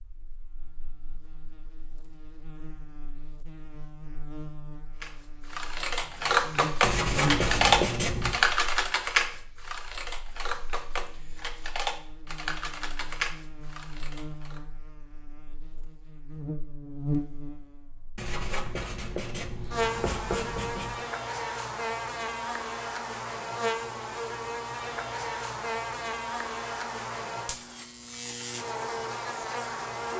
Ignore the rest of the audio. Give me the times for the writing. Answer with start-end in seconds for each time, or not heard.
6.8-8.4, 18.1-21.0.